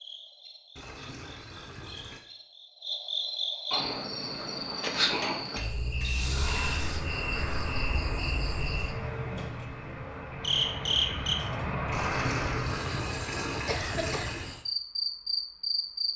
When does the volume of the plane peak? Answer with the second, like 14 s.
12 s.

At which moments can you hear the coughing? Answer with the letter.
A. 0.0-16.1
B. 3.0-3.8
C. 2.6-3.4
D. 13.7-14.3
D.